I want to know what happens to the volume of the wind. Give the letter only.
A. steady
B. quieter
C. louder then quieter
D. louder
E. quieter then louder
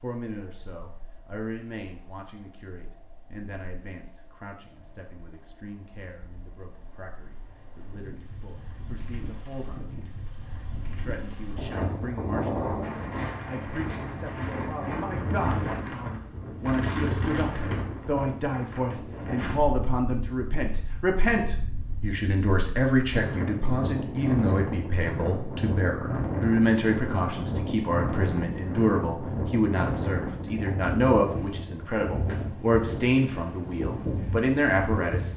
D.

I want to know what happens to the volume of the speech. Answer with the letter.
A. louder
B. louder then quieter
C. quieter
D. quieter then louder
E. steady
A.